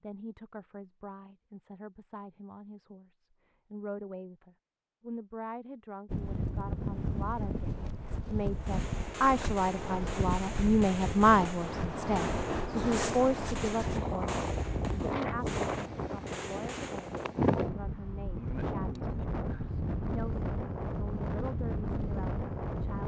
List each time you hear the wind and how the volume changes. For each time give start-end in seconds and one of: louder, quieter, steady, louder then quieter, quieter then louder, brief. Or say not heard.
6.0-23.0 steady.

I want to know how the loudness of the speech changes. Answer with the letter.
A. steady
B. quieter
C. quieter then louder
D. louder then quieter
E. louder
D.